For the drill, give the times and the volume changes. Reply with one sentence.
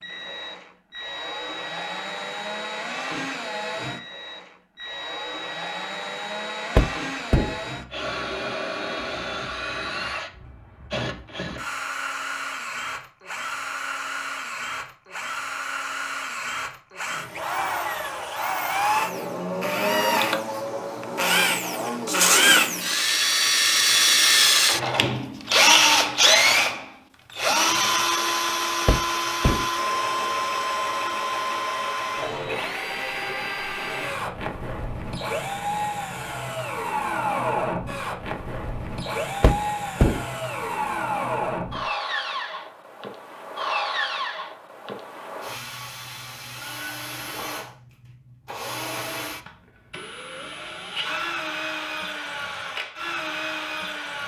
The drill can be heard from 0.0 to 54.2 s, getting louder then quieter.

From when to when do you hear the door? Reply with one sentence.
The door can be heard from 6.8 to 7.6 s, from 28.9 to 29.6 s and from 39.4 to 40.2 s.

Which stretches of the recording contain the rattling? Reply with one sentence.
The rattling can be heard from 22.1 to 22.6 s.